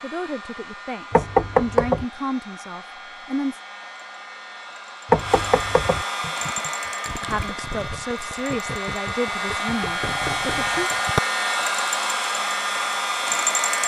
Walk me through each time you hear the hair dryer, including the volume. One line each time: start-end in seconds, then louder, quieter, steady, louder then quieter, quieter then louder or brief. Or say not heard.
0.0-13.8 louder.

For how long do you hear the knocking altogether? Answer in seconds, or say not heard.
3 s.